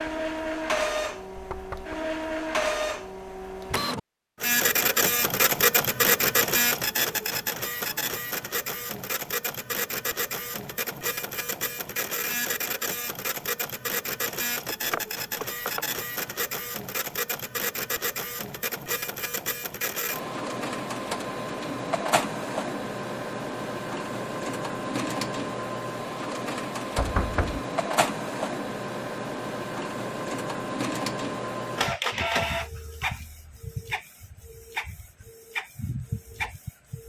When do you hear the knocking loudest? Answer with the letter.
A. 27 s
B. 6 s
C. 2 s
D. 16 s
A.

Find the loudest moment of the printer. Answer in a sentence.
The volume of the printer peaks at 6 seconds.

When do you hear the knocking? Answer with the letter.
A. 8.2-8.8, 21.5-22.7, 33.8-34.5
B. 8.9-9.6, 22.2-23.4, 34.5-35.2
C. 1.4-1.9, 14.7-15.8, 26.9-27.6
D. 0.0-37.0
C.